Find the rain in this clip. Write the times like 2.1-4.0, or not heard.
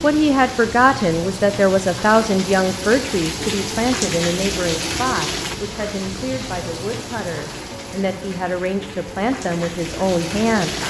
0.0-10.8.